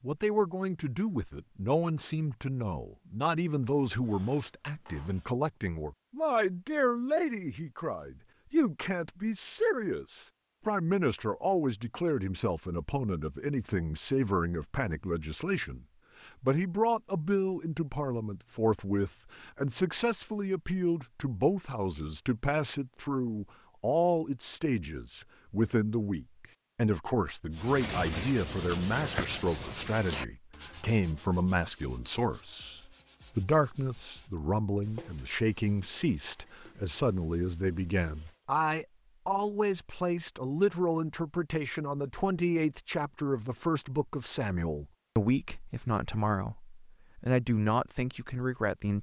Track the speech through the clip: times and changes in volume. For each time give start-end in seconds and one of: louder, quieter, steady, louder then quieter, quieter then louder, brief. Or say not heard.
0.0-48.9 steady.